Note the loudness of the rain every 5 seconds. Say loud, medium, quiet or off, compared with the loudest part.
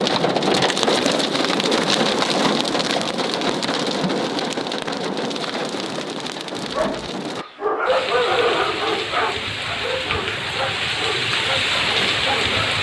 loud, medium, loud.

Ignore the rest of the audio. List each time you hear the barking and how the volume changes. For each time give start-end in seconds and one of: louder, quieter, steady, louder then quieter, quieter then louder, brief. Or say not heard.
6.7-12.7 quieter.